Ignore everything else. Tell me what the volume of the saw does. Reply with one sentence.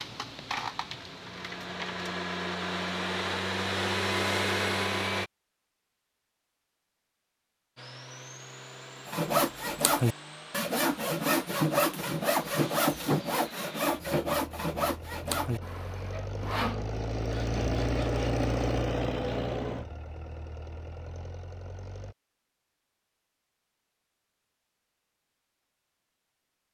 The volume of the saw goes down.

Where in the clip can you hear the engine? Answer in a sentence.
You can hear the engine from 0.0 to 5.3 s and from 7.8 to 22.1 s.